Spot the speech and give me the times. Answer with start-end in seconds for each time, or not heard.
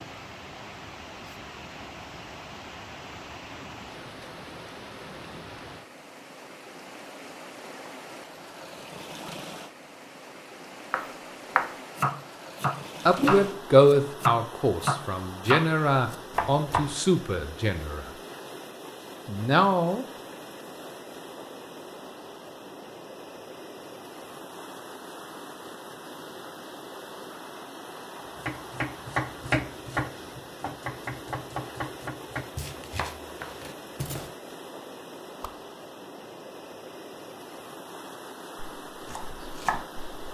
13.1-18.1, 19.2-20.1.